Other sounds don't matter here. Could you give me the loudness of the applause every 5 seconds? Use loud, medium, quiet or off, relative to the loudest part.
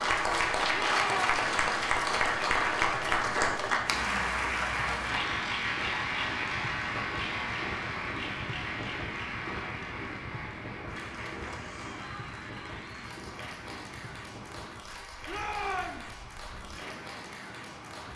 loud, medium, quiet, quiet.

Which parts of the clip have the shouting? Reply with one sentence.
The shouting can be heard from 0.8 to 1.5 s and from 15.2 to 16.1 s.